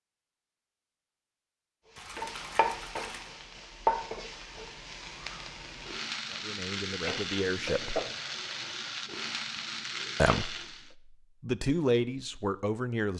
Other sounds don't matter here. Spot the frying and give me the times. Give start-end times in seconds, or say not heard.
1.9-10.9.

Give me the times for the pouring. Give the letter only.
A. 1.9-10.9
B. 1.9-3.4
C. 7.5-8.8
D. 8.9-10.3
B.